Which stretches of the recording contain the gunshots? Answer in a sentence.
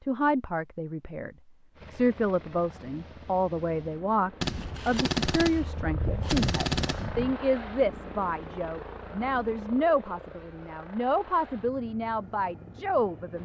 You can hear the gunshots from 4.4 to 7.3 s.